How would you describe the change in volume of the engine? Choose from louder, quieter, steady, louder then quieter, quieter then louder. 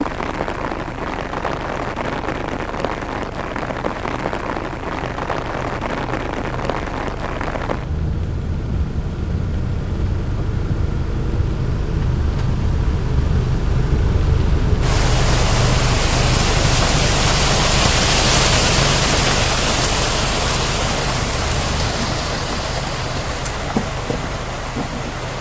louder then quieter.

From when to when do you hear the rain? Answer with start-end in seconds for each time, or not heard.
0.0-25.3.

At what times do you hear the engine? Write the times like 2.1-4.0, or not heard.
0.0-25.3.